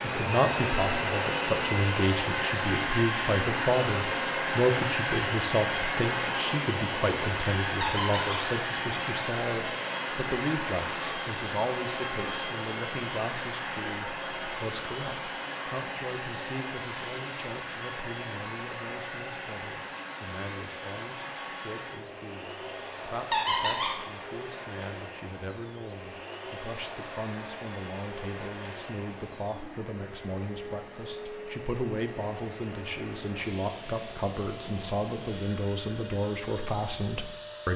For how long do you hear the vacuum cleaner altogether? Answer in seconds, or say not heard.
38 s.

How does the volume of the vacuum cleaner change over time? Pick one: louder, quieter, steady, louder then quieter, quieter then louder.
quieter.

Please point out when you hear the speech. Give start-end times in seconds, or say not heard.
0.0-37.7.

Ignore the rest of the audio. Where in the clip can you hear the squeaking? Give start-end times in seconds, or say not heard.
7.8-8.4, 23.3-23.9.